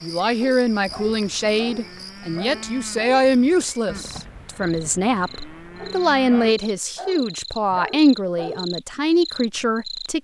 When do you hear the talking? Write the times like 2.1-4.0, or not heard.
0.0-10.2.